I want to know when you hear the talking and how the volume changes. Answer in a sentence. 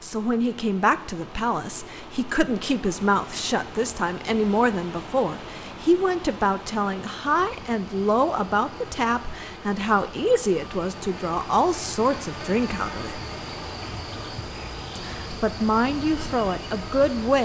You can hear the talking from 0.0 to 13.2 s, at a steady volume; and briefly from 14.9 to 17.3 s.